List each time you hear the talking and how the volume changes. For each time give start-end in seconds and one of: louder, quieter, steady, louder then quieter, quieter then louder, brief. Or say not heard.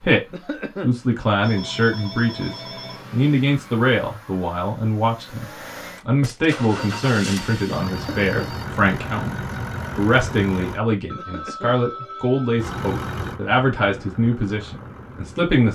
0.0-15.7 steady.